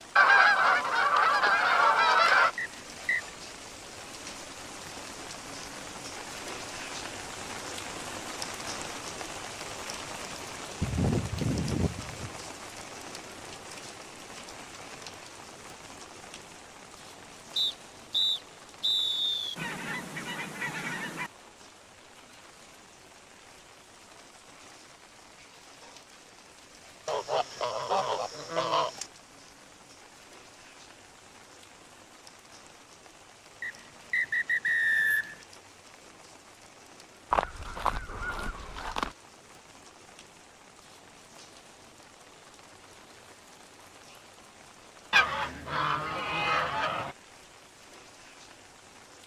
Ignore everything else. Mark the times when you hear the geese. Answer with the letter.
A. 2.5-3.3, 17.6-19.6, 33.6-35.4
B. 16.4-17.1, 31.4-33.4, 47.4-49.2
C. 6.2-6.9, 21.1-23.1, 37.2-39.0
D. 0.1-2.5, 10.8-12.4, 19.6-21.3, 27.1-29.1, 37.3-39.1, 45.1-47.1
D.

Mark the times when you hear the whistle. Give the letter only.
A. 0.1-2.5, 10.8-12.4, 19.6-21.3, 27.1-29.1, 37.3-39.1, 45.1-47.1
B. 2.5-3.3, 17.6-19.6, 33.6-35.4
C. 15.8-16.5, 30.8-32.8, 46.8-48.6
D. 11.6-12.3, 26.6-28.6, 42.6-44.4
B.